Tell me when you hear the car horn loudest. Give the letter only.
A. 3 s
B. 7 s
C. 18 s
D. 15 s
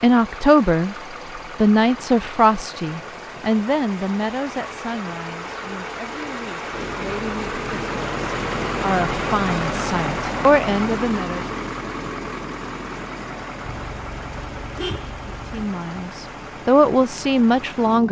D.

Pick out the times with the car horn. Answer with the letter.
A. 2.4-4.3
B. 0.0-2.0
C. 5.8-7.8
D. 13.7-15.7
D.